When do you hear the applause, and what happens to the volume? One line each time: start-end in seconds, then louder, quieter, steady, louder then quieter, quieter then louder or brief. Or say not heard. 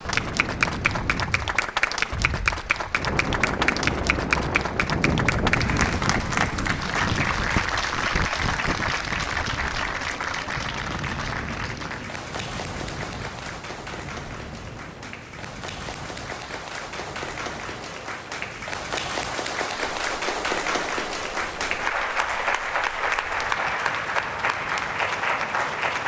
0.0-26.0 quieter then louder.